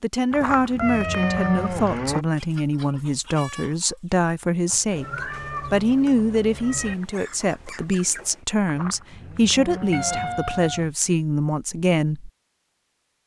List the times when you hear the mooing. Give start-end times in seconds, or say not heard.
0.3-2.2, 8.7-10.4.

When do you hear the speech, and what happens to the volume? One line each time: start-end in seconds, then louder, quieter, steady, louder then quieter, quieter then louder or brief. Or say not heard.
0.0-12.3 steady.